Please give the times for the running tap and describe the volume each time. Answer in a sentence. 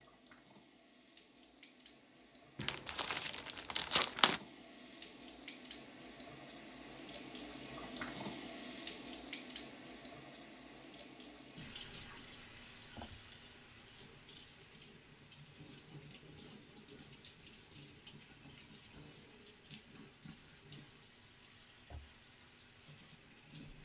The running tap can be heard from 0.0 to 23.8 s, getting louder then quieter.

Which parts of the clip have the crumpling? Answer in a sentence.
You can hear the crumpling from 2.5 to 4.4 s.